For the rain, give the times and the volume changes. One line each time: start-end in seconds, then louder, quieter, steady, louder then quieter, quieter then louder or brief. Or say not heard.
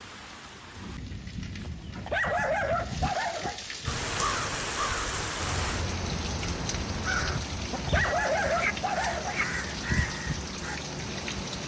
0.0-11.6 louder.